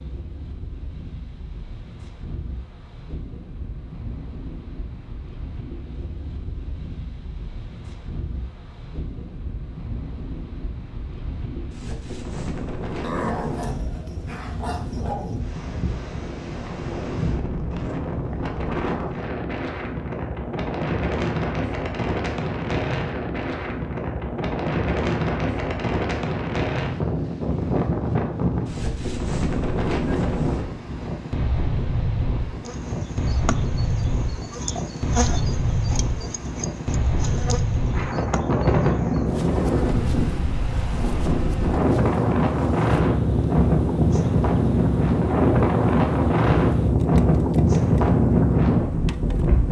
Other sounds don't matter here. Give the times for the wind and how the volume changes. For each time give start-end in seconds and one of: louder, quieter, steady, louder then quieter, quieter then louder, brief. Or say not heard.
0.0-49.6 louder.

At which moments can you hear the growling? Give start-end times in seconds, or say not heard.
13.0-15.5.